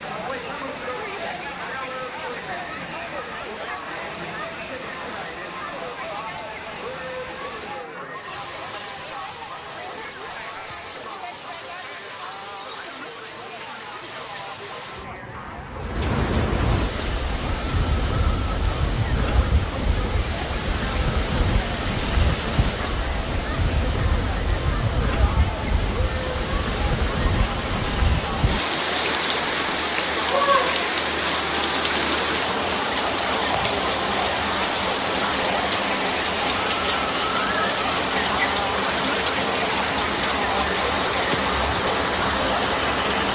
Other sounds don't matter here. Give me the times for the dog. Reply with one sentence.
You can't hear the dog here.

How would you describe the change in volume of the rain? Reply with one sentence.
The loudness of the rain goes up.